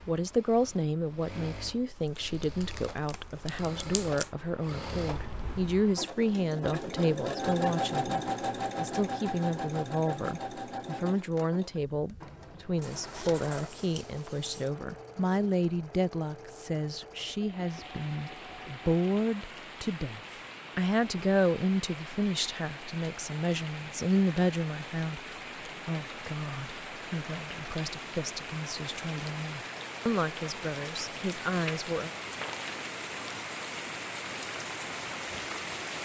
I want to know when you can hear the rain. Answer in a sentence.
You can hear the rain from 17.4 to 35.9 s.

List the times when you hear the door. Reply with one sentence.
The door can't be heard in this clip.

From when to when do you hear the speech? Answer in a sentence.
You can hear the speech from 0.1 to 32.1 s.